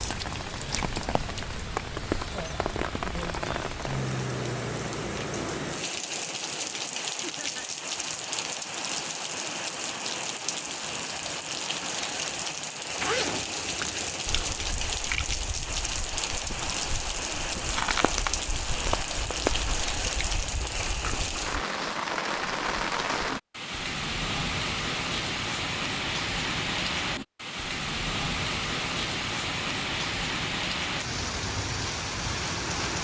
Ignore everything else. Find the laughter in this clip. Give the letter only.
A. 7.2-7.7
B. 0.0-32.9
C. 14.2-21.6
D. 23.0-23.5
A.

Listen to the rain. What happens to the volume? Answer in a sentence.
The loudness of the rain stays about the same.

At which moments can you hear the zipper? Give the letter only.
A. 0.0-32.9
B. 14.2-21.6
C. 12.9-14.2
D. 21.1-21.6
C.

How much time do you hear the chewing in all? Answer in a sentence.
You can hear the chewing for 7 seconds altogether.